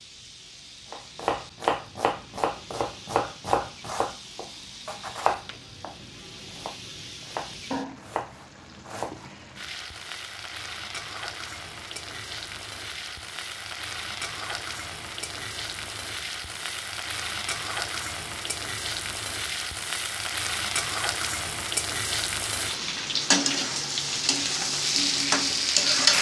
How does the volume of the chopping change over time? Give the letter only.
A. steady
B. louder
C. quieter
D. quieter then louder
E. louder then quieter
D.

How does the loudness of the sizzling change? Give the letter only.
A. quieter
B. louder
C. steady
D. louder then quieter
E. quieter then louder
B.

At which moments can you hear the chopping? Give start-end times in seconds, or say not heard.
0.9-9.2.